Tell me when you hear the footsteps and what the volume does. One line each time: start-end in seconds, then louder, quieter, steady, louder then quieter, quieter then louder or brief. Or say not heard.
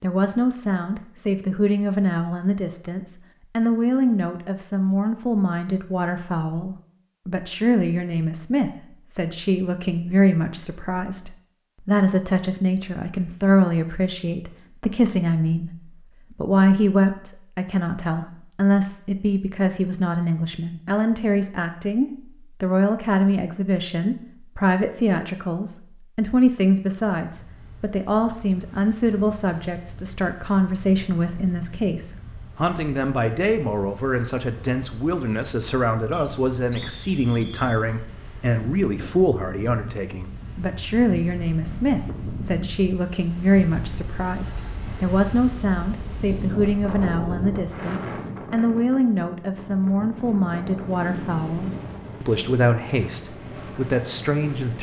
not heard.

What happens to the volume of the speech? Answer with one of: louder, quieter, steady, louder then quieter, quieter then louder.
steady.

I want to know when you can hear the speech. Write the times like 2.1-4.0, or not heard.
0.0-54.7.